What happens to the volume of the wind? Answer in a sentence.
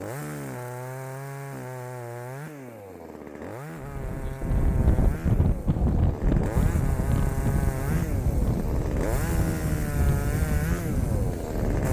The volume of the wind stays about the same.